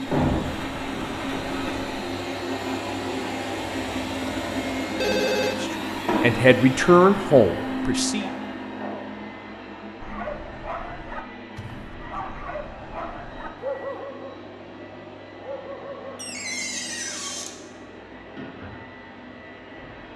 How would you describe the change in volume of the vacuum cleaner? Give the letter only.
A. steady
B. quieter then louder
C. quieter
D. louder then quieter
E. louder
C.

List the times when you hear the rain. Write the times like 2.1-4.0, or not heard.
not heard.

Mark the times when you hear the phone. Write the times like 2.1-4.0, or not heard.
5.0-5.7.